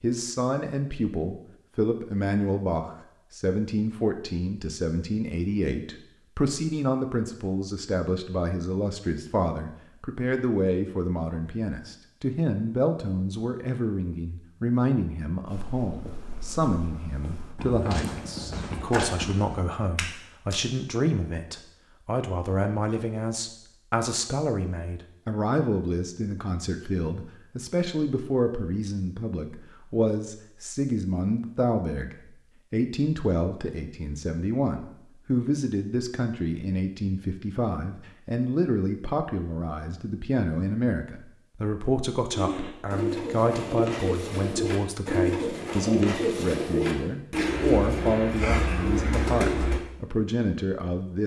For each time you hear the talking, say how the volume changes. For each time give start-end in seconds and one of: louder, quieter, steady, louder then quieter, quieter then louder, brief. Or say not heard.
0.0-51.2 steady.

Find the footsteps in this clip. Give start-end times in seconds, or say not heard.
15.4-20.6.